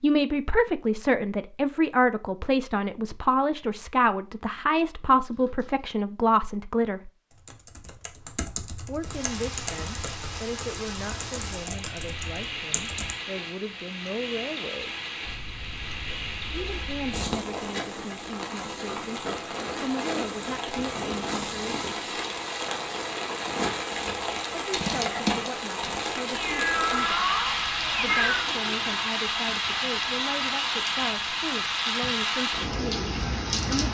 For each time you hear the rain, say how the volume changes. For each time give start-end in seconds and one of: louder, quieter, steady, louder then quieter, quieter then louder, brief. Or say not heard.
9.0-33.9 louder.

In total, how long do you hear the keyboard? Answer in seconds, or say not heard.
6 s.